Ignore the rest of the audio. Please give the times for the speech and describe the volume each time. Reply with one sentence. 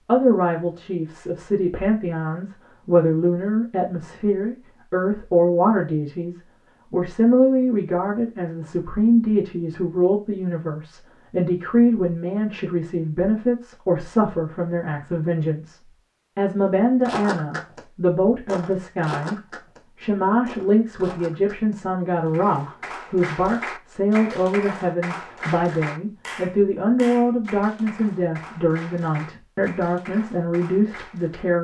The speech can be heard from 0.1 to 31.5 s, at a steady volume.